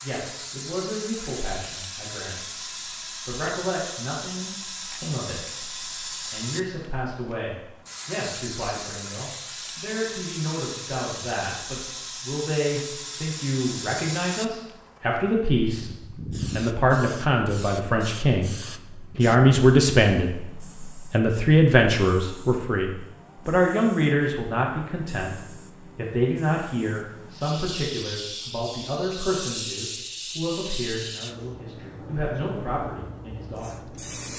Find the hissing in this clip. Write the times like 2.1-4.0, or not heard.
0.0-34.3.